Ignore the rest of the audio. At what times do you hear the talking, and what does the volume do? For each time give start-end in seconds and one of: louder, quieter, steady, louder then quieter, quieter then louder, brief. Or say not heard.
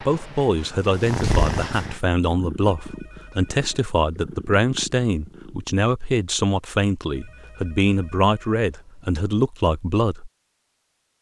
0.0-10.3 steady.